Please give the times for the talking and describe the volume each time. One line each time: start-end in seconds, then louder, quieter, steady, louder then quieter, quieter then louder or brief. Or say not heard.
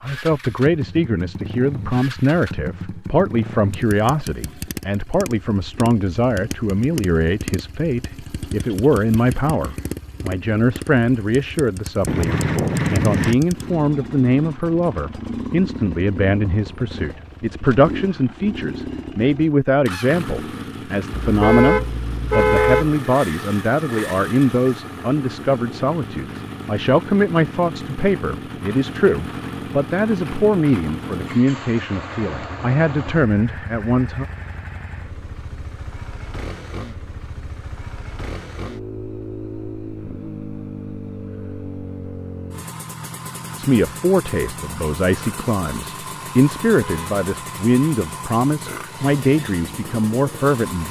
0.0-34.2 steady
43.5-50.8 steady.